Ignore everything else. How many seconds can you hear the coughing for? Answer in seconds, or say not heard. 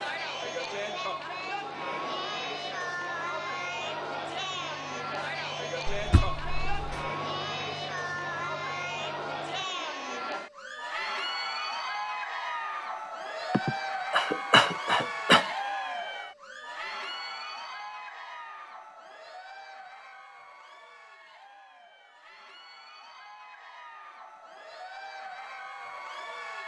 3 s.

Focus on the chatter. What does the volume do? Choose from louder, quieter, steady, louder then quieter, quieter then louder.
quieter.